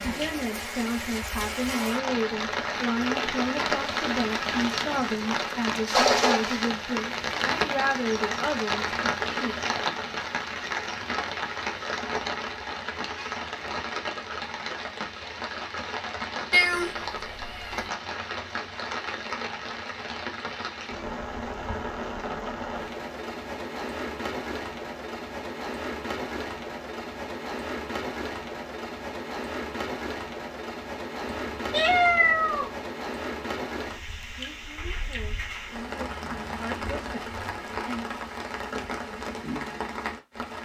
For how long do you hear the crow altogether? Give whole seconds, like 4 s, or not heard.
not heard.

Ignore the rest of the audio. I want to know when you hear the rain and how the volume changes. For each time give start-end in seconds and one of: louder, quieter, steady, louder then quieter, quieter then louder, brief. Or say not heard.
0.0-40.6 quieter.